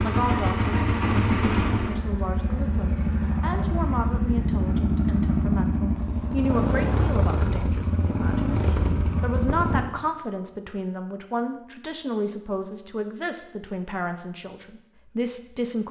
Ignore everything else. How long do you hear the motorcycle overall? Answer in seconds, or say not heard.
10 s.